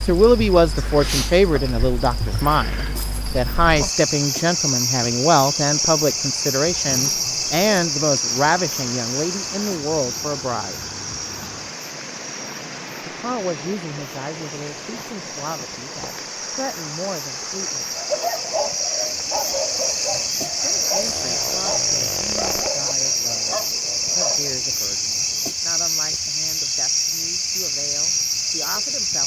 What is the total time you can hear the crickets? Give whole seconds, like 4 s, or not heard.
29 s.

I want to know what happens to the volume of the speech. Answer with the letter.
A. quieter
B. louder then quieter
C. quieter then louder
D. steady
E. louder
A.